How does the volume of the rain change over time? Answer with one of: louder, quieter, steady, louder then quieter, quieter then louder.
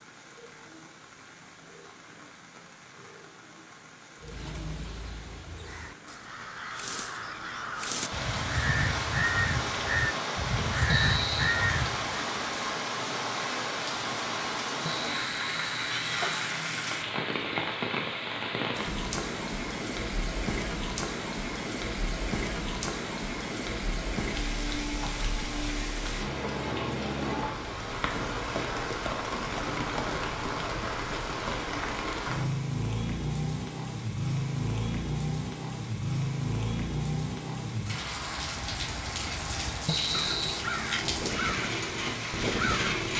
louder.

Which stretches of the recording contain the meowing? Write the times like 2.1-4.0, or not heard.
10.8-11.6, 14.8-16.5, 39.9-40.6.